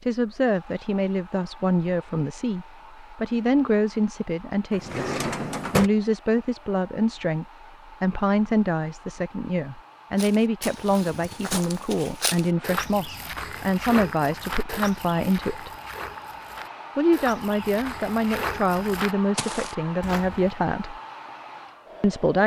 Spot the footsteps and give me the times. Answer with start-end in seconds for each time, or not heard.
10.2-20.6.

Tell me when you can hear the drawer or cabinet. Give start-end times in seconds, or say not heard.
4.7-5.9.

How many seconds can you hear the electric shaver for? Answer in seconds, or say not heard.
not heard.